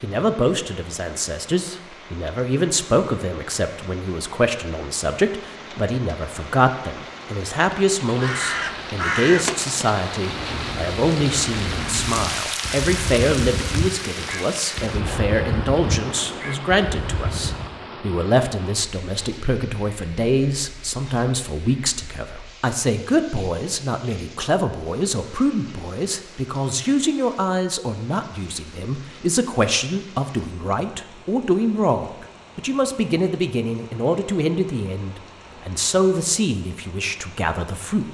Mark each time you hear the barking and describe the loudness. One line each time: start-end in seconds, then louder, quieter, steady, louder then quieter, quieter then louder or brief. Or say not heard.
not heard.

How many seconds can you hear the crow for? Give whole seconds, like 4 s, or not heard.
10 s.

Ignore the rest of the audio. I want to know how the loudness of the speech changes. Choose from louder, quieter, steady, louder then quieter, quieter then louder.
steady.